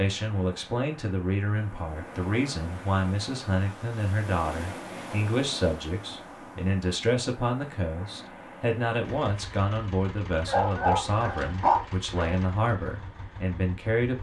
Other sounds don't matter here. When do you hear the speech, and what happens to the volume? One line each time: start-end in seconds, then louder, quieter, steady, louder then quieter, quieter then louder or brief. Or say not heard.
0.0-14.1 steady.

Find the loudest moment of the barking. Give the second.
12 s.